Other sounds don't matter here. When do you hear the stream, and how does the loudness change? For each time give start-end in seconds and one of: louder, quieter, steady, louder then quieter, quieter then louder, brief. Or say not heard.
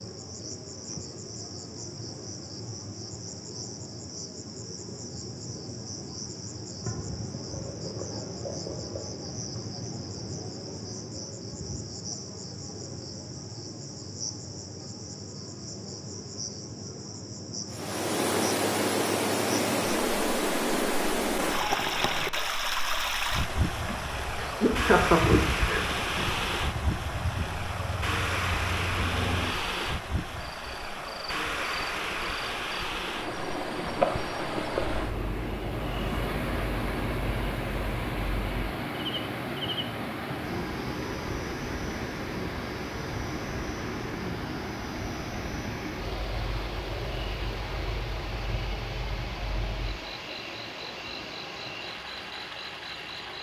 17.7-53.3 quieter.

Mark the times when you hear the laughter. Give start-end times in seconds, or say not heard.
23.9-25.8.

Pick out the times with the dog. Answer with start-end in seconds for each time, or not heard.
not heard.